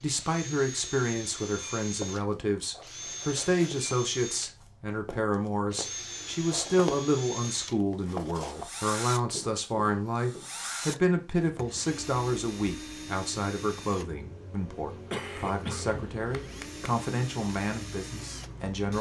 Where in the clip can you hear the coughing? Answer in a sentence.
You can hear the coughing from 15.1 to 16.7 s.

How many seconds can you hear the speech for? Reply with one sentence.
You can hear the speech for 19 seconds altogether.